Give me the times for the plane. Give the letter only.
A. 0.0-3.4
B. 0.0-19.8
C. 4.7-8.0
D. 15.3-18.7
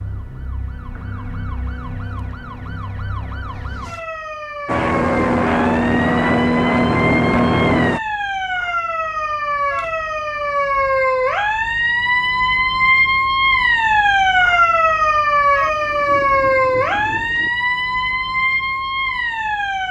C.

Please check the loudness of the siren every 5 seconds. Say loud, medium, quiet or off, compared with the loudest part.
quiet, medium, loud, loud.